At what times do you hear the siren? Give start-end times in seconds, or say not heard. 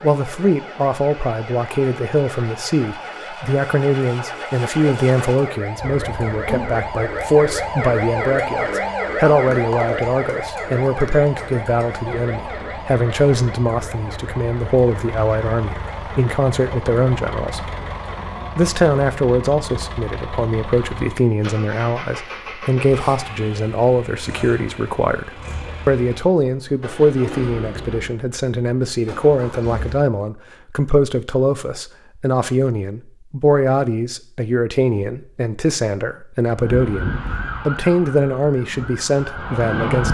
0.0-18.6, 36.5-40.0.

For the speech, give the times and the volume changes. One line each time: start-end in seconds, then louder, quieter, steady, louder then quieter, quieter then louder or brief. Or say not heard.
0.0-17.6 steady
18.6-40.0 steady.